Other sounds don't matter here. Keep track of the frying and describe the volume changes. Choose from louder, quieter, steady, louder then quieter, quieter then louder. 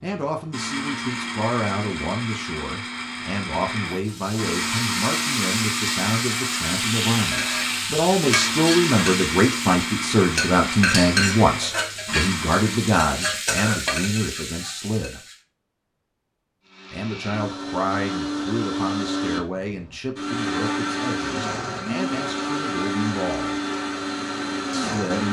steady.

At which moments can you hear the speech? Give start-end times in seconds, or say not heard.
0.0-15.2, 16.9-23.6, 24.7-25.2.